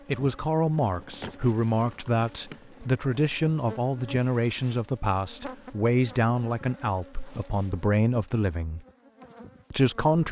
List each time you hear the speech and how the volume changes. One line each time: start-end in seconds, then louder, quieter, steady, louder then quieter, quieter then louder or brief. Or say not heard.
0.1-8.8 steady
9.7-10.2 brief.